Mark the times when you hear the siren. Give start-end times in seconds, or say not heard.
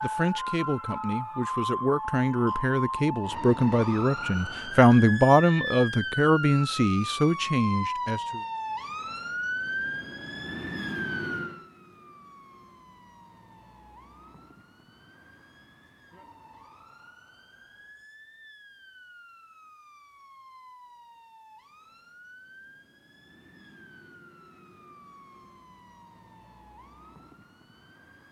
0.0-28.2.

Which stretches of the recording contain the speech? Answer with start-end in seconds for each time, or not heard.
0.0-8.4.